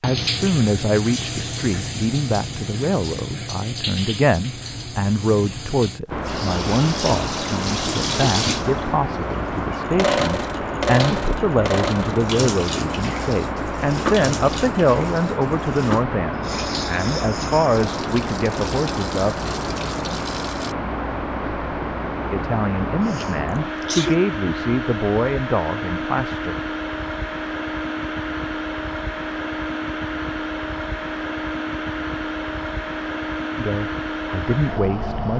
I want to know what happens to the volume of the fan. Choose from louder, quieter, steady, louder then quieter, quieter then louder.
steady.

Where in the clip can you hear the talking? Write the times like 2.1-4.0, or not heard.
0.0-19.4, 22.3-26.6, 33.5-35.3.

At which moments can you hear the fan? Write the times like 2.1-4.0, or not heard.
6.1-35.3.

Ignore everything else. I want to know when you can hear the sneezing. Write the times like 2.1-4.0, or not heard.
10.9-11.3, 23.1-24.2.